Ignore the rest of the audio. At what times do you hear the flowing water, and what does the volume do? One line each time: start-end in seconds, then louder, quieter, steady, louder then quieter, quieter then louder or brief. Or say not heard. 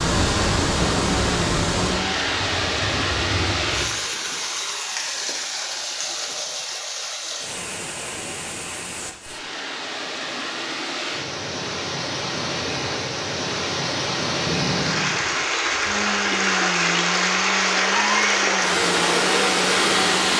0.0-20.3 quieter then louder.